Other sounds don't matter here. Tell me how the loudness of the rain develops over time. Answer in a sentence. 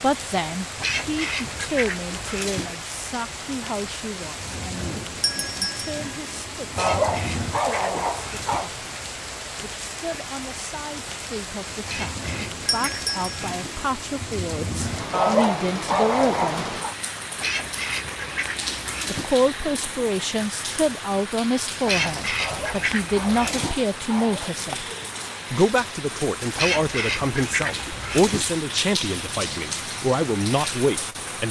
The volume of the rain stays about the same.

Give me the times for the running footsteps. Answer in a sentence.
The running footsteps can't be heard in this clip.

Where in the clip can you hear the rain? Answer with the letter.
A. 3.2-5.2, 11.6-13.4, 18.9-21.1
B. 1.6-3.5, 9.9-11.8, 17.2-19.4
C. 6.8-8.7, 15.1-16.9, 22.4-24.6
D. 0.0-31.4
D.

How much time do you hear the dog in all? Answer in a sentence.
The dog can be heard for 6 seconds in total.